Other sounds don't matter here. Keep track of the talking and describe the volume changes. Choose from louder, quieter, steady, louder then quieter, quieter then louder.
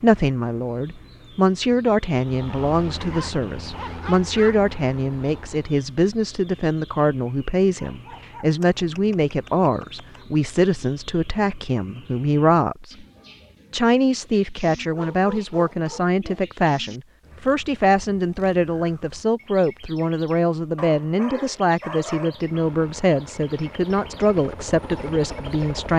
steady.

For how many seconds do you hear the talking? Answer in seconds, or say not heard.
25 s.